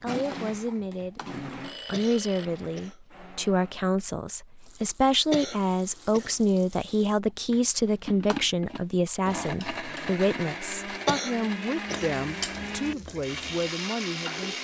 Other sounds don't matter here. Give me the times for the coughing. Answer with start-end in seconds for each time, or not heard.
1.9-3.0, 5.3-6.3, 11.1-12.1.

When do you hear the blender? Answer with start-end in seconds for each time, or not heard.
0.0-3.9, 7.5-14.5.